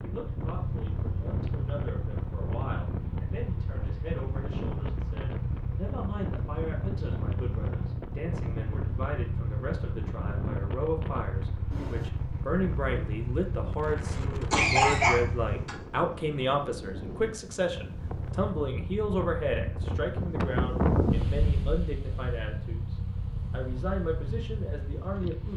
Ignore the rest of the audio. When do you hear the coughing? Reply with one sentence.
The coughing can be heard from 14.5 to 15.8 s.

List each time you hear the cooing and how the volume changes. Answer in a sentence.
You can't hear the cooing here.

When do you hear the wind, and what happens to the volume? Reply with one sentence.
You can hear the wind from 0.0 to 25.5 s, getting louder.